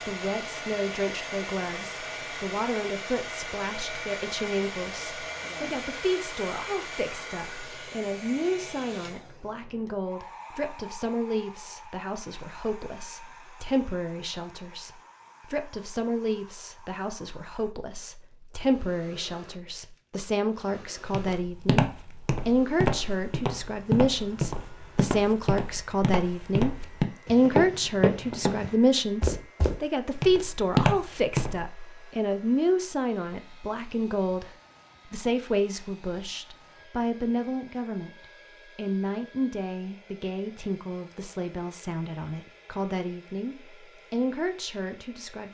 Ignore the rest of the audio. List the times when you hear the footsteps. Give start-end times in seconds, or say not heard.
21.1-31.6.